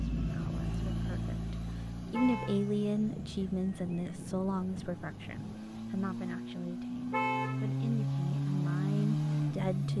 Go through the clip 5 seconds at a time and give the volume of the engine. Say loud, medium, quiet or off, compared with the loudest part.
medium, loud.